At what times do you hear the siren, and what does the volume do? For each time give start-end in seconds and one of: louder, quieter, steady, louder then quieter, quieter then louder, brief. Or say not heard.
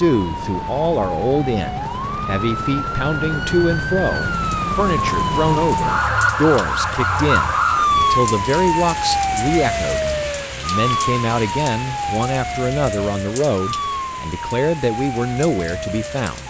0.0-16.4 louder then quieter.